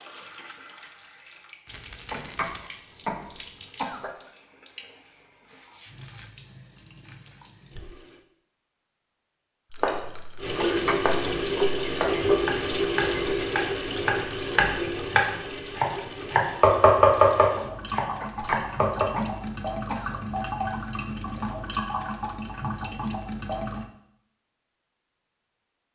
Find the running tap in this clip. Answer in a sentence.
The running tap can be heard from 0.0 to 8.2 s and from 10.4 to 23.9 s.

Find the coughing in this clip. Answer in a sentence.
You can hear the coughing from 2.1 to 4.1 s, from 10.7 to 11.2 s and from 18.2 to 20.2 s.